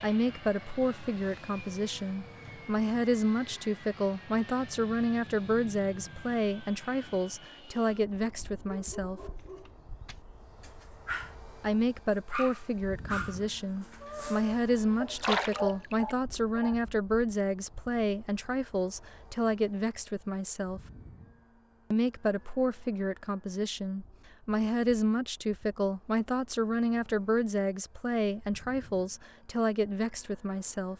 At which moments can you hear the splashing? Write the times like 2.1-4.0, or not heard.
15.2-16.1.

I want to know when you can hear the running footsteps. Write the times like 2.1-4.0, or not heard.
not heard.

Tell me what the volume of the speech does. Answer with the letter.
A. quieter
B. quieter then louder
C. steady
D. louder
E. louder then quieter
C.